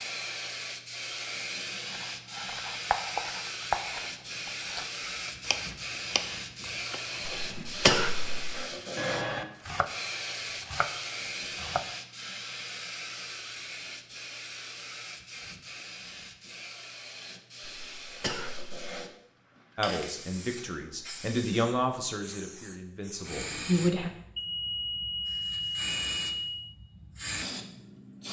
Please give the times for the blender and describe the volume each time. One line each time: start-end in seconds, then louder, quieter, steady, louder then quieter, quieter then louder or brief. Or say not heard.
not heard.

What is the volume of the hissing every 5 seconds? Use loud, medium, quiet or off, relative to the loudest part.
loud, loud, loud, medium, medium, loud.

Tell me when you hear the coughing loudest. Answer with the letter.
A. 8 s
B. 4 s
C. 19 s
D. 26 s
A.